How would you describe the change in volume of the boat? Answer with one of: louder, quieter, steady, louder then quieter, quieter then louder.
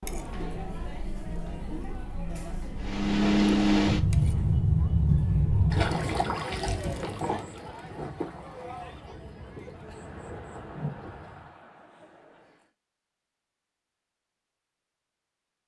quieter.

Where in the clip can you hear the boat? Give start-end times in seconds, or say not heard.
2.8-11.5.